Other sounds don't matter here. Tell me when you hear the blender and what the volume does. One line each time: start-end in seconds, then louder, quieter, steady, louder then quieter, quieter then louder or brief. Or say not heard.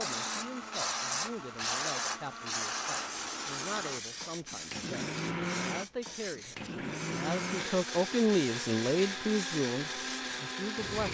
0.0-11.0 louder.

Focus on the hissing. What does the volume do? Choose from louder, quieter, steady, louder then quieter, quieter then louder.
quieter.